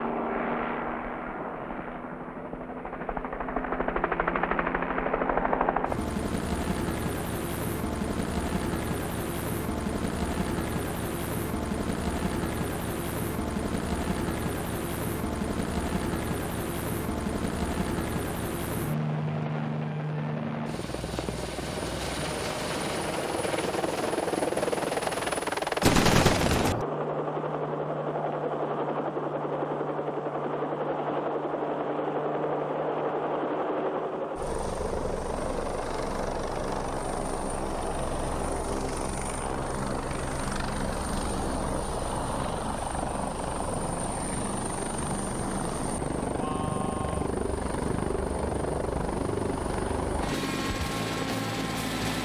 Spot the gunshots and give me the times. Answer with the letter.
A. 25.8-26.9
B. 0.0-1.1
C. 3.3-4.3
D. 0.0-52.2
A.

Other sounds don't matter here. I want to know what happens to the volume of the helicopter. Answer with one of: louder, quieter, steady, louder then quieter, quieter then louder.
steady.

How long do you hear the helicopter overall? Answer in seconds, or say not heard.
52 s.